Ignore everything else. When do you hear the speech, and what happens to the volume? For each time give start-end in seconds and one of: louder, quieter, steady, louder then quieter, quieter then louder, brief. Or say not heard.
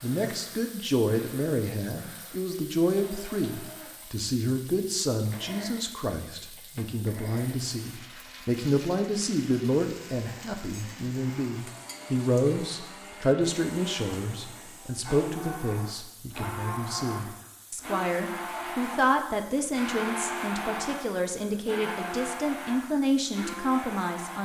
0.0-24.4 steady.